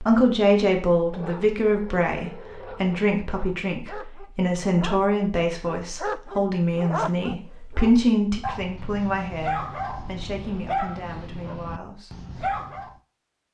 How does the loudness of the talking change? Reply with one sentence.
The loudness of the talking goes down.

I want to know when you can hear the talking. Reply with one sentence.
You can hear the talking from 0.0 to 12.2 s.